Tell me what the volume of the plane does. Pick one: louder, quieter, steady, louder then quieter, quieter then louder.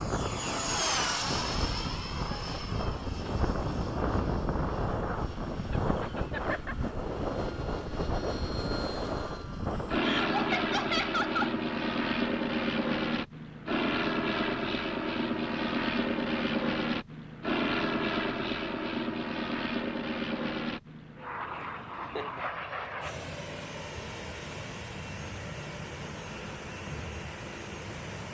quieter.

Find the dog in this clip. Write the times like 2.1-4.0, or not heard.
not heard.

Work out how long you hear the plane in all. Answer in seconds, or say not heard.
28 s.